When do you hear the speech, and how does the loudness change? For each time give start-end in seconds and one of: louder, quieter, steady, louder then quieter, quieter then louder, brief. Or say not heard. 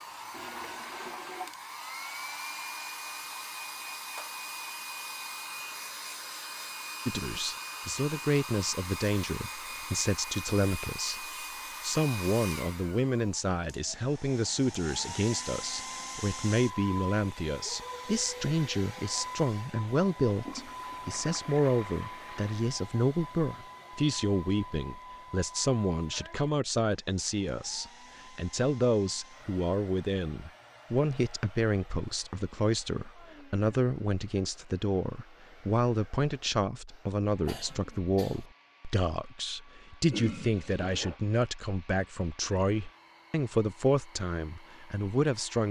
7.0-45.6 steady.